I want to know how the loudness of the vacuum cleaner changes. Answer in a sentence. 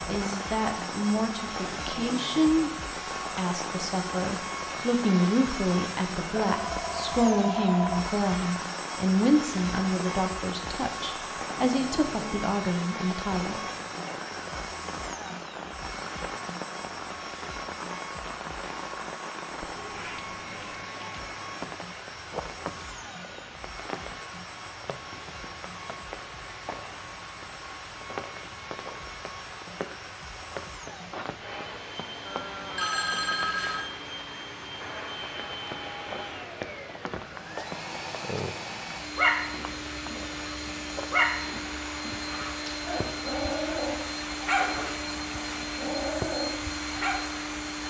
The volume of the vacuum cleaner goes down, then up.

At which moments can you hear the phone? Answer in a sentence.
You can hear the phone from 6.5 to 8.1 s, from 22.8 to 23.6 s and from 32.2 to 33.9 s.